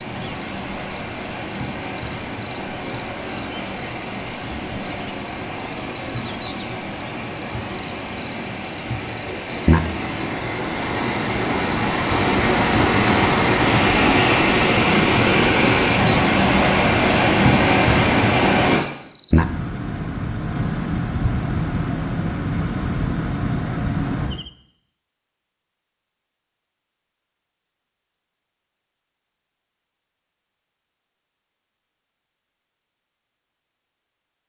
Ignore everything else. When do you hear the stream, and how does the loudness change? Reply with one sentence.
The stream can be heard from 0.0 to 18.8 s, getting louder.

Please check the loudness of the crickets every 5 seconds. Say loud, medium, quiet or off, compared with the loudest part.
loud, loud, loud, loud, loud, off, off.